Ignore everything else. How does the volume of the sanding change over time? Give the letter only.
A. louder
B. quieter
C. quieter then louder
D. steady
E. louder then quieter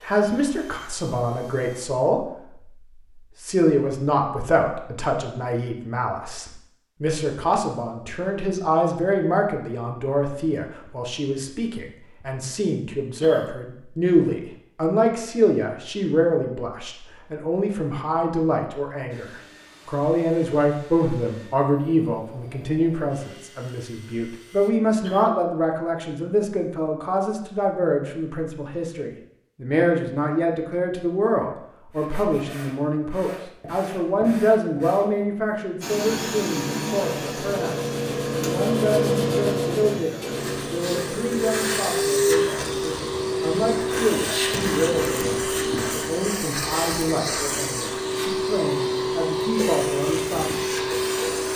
E.